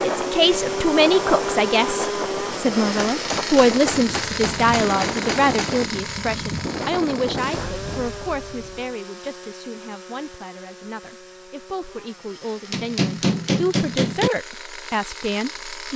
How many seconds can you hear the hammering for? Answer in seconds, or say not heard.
4 s.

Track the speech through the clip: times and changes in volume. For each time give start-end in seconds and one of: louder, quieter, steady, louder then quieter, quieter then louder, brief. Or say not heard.
0.0-15.9 quieter then louder.